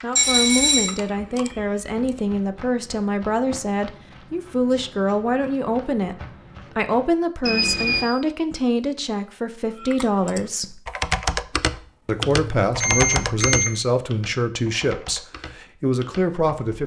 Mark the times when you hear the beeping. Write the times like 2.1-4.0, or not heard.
0.1-0.9, 7.4-8.1, 12.1-13.8.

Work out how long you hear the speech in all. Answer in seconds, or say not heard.
15 s.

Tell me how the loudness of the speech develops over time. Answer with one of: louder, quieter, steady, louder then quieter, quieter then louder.
steady.